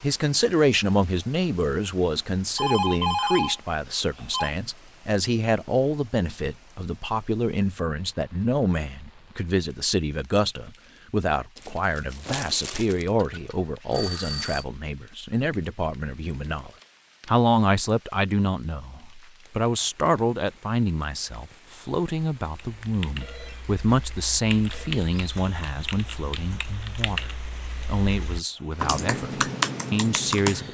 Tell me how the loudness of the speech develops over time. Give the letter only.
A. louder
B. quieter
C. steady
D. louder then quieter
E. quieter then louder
C.